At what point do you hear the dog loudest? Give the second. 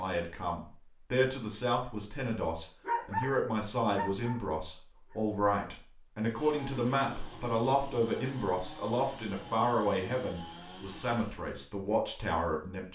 3 s.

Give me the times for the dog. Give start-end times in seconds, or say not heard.
2.9-5.2.